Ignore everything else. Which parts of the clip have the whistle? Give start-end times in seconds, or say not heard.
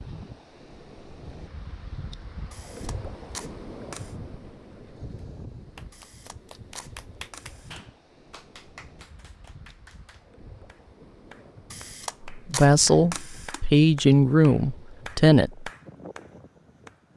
not heard.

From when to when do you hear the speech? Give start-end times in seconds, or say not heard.
12.3-15.7.